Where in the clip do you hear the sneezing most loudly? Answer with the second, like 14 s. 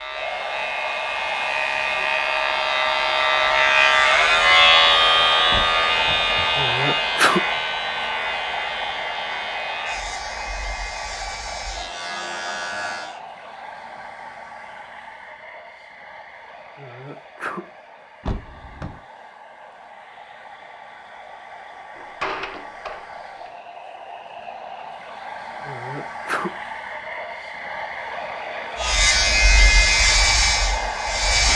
7 s.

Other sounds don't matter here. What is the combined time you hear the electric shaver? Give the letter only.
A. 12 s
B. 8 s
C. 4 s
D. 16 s
D.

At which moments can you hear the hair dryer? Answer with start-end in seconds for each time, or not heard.
0.0-31.5.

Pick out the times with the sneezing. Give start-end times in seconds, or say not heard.
6.5-7.4, 16.8-17.6, 25.6-26.5.